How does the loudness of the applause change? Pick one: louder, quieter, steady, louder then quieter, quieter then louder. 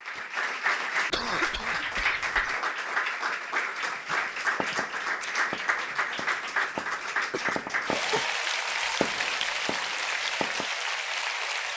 steady.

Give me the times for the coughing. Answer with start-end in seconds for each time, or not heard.
1.1-2.5, 7.3-8.3.